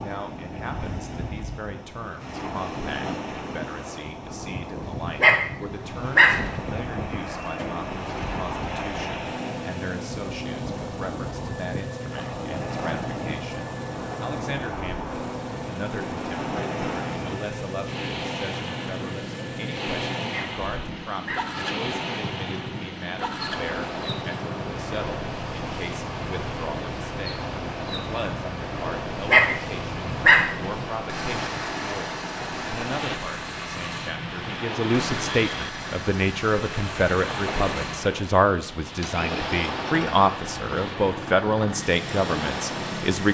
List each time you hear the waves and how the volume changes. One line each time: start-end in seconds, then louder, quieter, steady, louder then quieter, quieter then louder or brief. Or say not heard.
0.0-43.3 steady.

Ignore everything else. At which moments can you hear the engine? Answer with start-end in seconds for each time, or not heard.
5.8-43.3.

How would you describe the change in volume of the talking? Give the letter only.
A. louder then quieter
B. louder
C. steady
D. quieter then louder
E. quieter
B.